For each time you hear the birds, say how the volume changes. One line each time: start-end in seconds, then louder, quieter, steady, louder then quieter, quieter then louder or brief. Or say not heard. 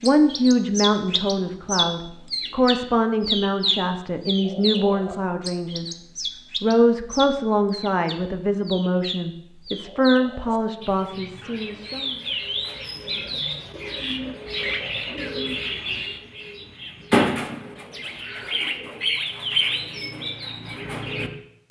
0.0-21.6 quieter then louder.